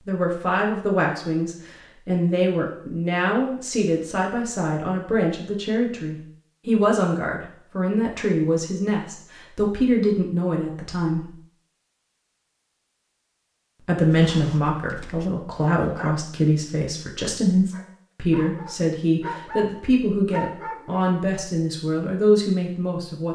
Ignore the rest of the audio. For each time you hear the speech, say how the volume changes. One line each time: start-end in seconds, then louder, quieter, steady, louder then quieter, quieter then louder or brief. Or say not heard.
0.1-11.3 steady
13.8-23.3 steady.